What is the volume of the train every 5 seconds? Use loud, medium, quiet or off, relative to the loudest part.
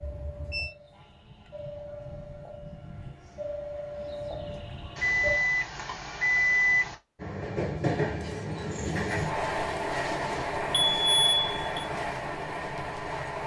medium, loud, loud.